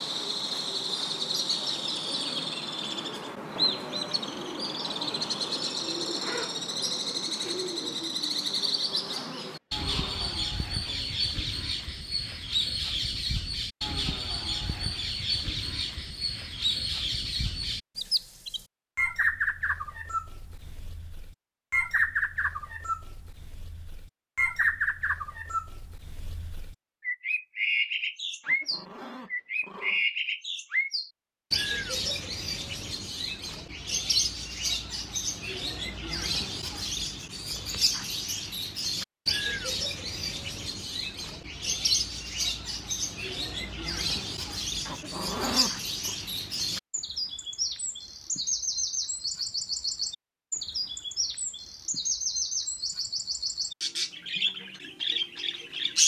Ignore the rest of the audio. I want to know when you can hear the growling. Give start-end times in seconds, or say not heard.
8.7-11.3, 28.4-30.1, 44.9-46.1.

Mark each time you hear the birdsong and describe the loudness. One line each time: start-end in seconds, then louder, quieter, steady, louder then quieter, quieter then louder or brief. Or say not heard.
0.0-56.0 steady.